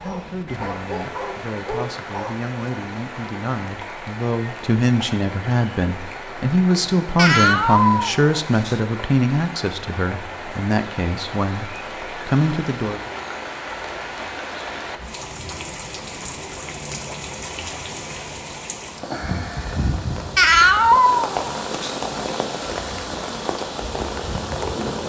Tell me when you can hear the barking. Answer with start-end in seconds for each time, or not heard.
0.0-2.5.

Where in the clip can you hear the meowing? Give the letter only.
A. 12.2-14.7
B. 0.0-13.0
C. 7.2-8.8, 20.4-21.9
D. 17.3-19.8
C.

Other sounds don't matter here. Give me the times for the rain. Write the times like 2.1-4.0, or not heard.
0.0-25.0.